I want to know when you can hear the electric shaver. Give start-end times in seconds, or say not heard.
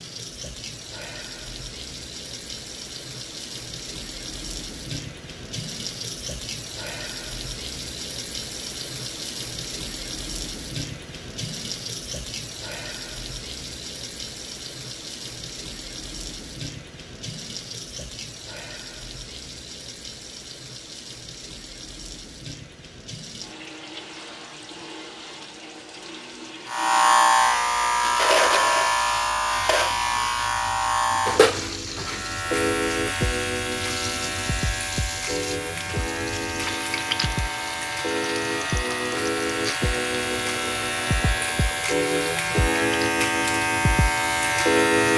26.6-45.1.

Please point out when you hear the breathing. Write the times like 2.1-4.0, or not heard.
not heard.